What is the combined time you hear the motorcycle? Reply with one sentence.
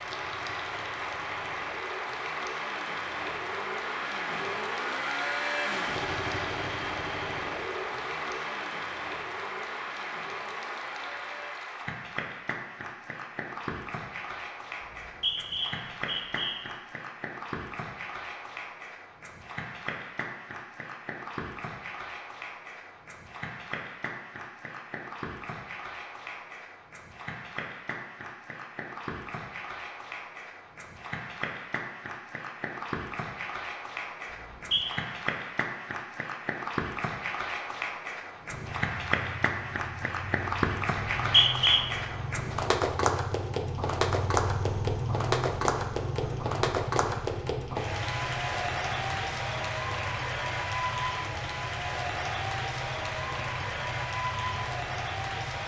The motorcycle can be heard for 29 seconds in total.